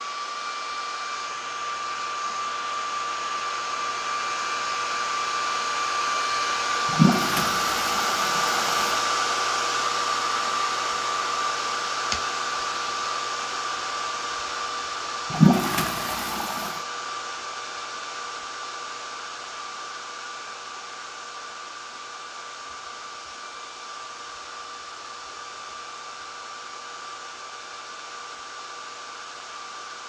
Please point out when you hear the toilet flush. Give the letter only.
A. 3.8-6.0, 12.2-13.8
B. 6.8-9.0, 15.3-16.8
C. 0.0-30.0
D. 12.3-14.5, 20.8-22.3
B.